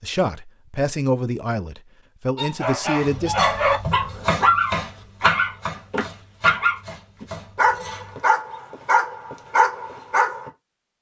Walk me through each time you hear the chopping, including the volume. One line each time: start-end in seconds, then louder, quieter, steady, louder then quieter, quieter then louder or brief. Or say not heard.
3.0-8.2 quieter.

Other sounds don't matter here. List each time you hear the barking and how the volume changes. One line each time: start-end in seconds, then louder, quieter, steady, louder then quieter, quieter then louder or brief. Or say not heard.
2.4-10.5 steady.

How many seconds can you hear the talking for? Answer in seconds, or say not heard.
3 s.